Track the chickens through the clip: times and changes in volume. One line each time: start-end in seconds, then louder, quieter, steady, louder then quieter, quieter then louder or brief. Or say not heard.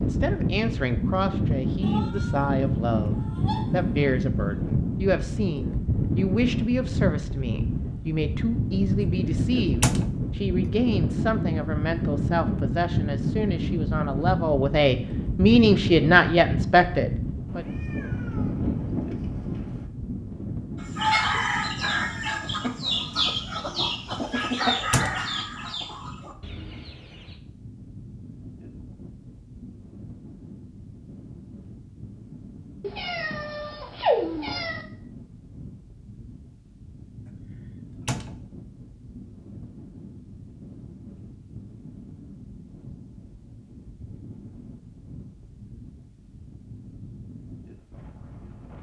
20.8-27.4 quieter.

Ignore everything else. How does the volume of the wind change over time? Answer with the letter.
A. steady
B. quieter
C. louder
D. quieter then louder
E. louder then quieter
B.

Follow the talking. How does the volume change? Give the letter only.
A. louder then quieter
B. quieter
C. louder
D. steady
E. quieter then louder
C.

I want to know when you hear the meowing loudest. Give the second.
34 s.